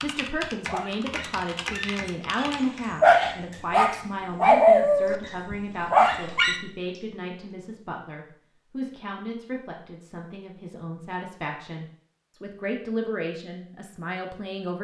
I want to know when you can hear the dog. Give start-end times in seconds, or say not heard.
0.2-6.6.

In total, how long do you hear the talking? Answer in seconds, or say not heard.
15 s.